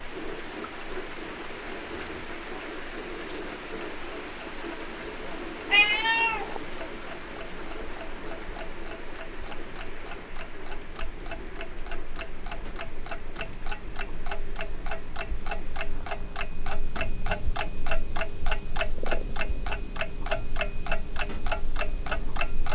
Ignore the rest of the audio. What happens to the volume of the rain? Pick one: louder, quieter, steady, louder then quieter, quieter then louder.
quieter.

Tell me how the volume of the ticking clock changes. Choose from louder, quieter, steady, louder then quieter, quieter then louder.
louder.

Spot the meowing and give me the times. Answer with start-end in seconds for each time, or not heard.
5.7-6.6.